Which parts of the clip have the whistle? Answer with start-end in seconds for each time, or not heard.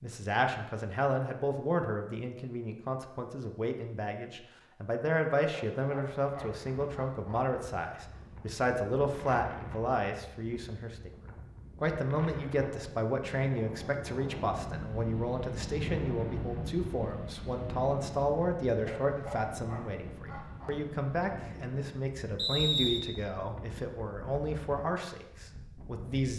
22.4-23.0.